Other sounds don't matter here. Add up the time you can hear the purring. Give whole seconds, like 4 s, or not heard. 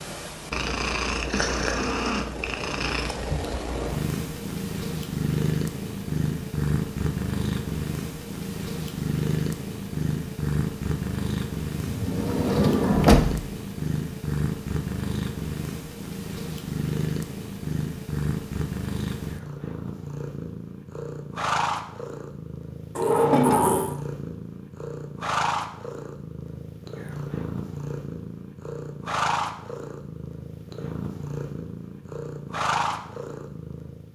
34 s.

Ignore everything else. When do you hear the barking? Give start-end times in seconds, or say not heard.
not heard.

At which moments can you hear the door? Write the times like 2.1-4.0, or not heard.
11.8-13.4, 22.9-23.9.